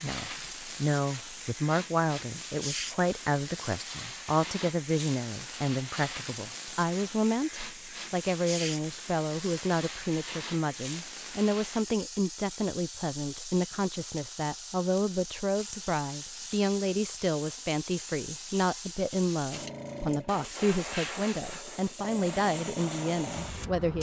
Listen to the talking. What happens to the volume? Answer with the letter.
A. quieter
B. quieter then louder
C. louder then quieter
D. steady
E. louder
D.